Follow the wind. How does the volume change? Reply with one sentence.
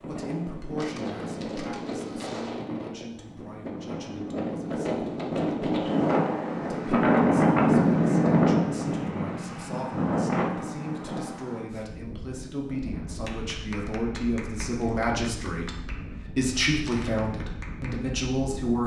The loudness of the wind goes up, then down.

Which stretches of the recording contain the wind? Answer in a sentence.
You can hear the wind from 0.0 to 18.8 s.